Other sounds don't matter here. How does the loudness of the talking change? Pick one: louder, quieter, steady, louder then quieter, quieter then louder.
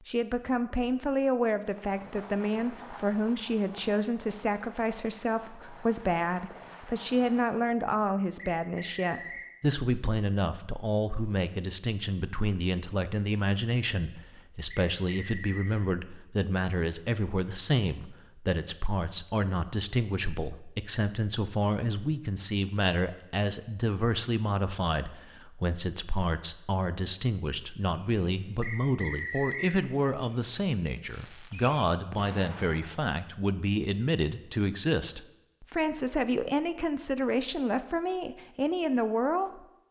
steady.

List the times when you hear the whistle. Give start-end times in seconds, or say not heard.
8.6-9.5, 14.7-15.8, 28.6-29.8.